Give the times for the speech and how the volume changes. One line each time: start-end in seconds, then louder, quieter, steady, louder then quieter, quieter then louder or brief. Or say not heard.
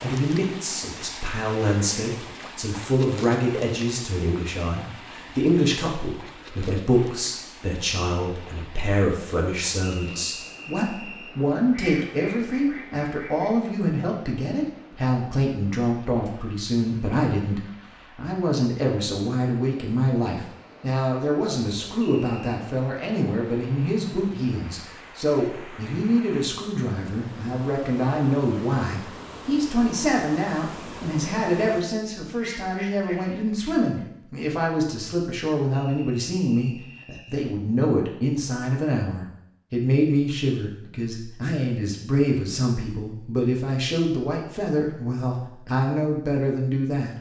0.0-47.1 steady.